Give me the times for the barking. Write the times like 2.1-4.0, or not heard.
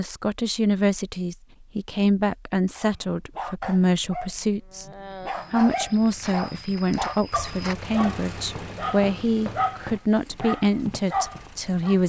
2.8-12.0.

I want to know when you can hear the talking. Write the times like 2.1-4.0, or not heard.
0.0-4.8, 5.5-12.0.